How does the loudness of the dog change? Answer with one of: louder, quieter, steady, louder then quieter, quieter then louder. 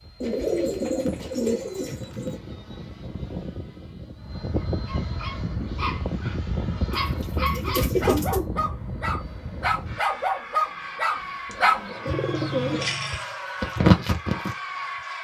louder.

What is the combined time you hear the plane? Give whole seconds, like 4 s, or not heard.
15 s.